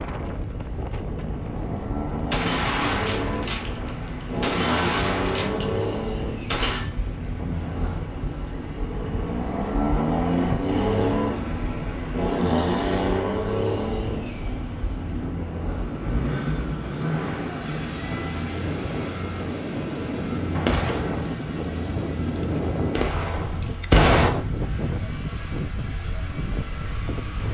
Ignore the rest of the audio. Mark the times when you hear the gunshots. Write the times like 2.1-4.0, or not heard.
2.3-6.8, 20.6-21.4, 22.9-24.3.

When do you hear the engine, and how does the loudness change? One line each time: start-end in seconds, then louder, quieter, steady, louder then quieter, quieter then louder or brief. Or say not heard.
0.2-27.5 quieter.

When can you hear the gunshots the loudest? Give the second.
24 s.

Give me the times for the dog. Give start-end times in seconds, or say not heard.
not heard.